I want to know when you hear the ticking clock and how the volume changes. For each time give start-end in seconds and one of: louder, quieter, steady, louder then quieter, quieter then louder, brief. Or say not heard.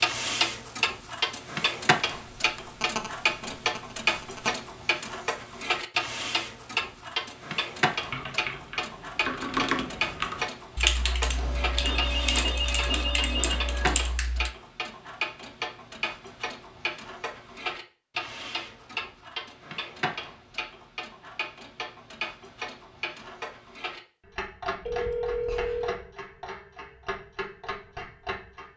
0.0-28.7 quieter.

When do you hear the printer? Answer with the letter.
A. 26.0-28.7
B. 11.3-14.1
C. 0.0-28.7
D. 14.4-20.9
B.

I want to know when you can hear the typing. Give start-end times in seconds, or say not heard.
8.0-14.5.